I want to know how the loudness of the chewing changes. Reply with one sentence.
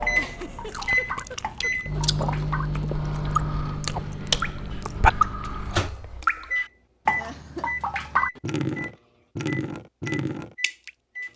The loudness of the chewing goes up.